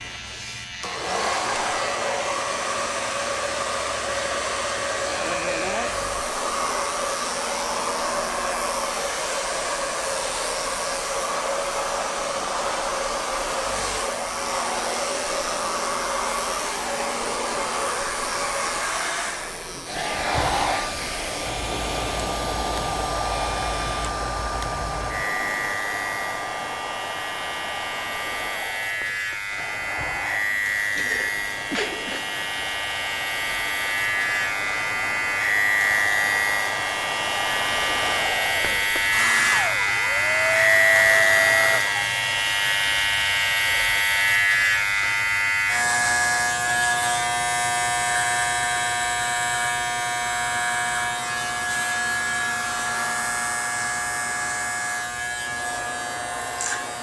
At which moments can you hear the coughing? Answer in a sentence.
You can hear the coughing from 30.9 to 32.2 s.